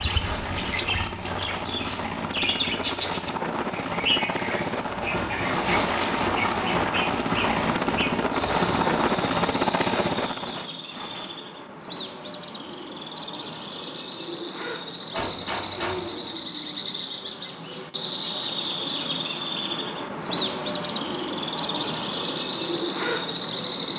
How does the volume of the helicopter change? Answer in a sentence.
The loudness of the helicopter goes up.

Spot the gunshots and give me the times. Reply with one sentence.
The gunshots can be heard from 4.8 to 8.9 s and from 15.1 to 16.4 s.